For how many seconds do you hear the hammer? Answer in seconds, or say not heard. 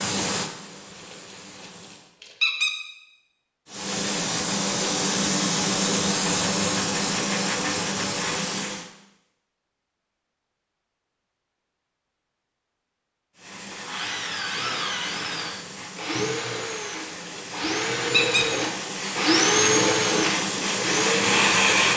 not heard.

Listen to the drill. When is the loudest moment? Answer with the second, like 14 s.
20 s.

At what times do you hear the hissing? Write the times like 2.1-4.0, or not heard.
0.0-2.1, 3.6-8.9, 13.3-21.9.